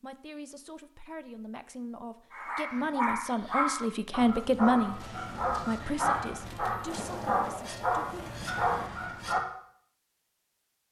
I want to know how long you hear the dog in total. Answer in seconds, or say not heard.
7 s.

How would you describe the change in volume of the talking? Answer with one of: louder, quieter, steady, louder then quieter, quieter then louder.
louder then quieter.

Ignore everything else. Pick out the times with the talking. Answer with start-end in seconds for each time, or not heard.
0.0-8.3.